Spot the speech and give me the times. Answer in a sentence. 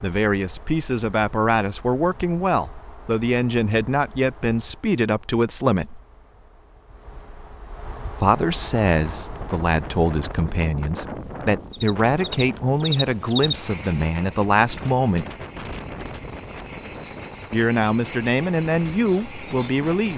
You can hear the speech from 0.0 to 6.0 s, from 8.2 to 15.2 s and from 17.5 to 20.1 s.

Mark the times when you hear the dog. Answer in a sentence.
The dog can't be heard in this clip.